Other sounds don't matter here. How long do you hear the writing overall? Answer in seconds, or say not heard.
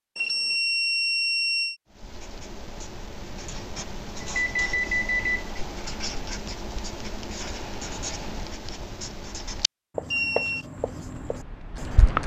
10 s.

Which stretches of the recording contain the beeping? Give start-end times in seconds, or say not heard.
0.1-1.8, 4.2-5.6, 10.1-10.7.